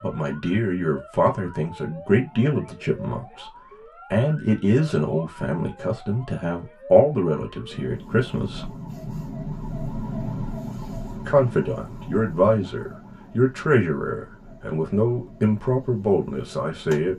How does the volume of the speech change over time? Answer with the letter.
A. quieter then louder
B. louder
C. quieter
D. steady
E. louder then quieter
D.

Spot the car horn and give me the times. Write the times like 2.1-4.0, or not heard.
not heard.